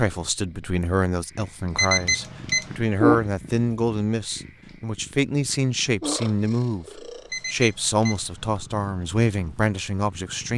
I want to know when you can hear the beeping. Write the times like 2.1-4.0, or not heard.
1.8-2.8, 7.3-8.6.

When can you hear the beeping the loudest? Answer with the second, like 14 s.
2 s.